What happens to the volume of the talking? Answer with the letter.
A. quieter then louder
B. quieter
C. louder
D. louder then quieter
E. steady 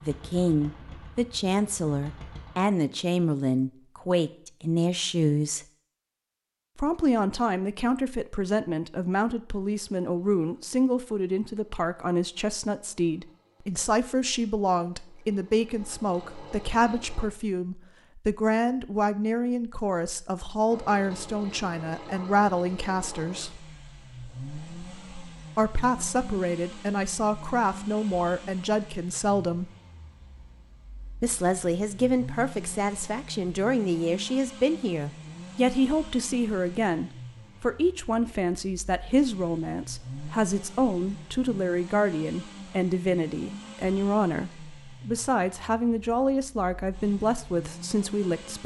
E.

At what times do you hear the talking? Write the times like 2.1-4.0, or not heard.
0.0-5.7, 6.8-23.6, 25.6-29.7, 31.2-48.6.